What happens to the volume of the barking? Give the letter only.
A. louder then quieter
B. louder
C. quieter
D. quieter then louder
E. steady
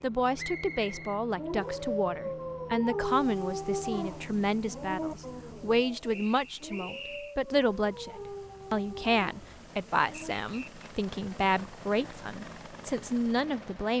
C.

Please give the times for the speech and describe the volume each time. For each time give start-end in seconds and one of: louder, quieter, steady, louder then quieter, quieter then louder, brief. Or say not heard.
0.0-13.9 steady.